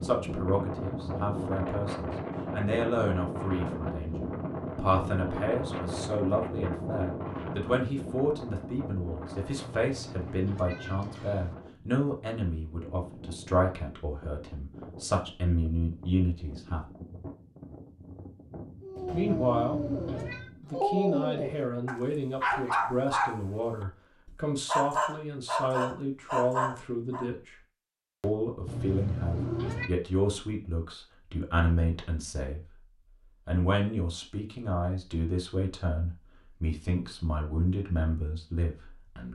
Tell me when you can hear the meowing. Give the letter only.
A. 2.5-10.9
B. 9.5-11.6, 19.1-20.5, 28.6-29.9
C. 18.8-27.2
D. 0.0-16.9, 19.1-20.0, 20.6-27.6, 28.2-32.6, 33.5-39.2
B.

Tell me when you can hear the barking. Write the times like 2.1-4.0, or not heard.
18.8-27.2.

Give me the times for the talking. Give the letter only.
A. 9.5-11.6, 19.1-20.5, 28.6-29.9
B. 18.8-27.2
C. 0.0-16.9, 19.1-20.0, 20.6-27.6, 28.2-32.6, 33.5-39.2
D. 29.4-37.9
C.